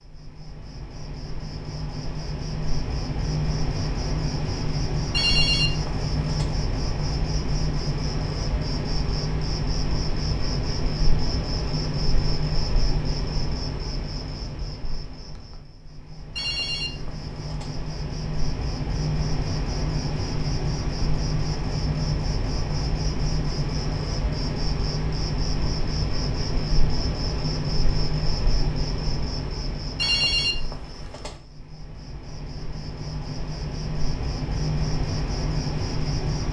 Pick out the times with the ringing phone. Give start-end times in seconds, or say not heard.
5.1-6.5, 16.4-17.8, 29.9-31.4.